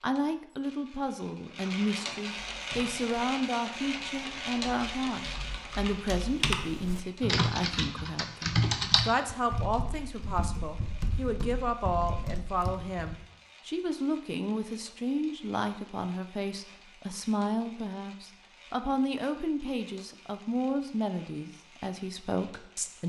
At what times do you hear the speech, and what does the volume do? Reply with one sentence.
You can hear the speech from 0.0 to 23.0 s, at a steady volume.